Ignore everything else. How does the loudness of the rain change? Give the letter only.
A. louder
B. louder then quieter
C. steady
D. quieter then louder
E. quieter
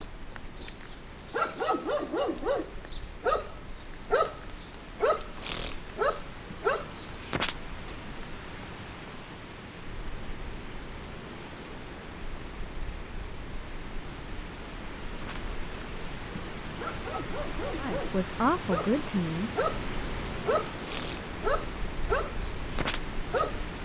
A.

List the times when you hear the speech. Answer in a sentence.
The speech can be heard from 17.8 to 19.6 s.